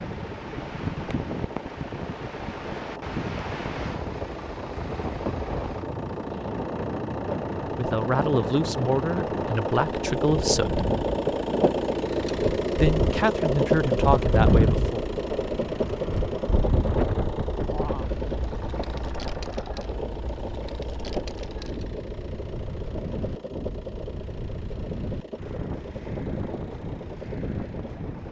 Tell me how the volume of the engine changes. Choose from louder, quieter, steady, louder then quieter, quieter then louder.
louder then quieter.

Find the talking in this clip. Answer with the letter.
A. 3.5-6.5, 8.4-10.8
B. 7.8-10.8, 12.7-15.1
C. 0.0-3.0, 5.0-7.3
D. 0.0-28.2
B.